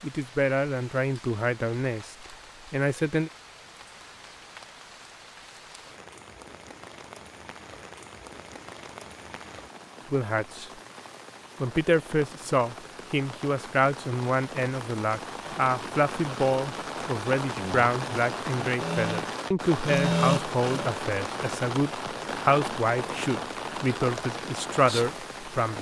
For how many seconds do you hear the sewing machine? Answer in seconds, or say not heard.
2 s.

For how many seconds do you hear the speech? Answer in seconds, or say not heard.
18 s.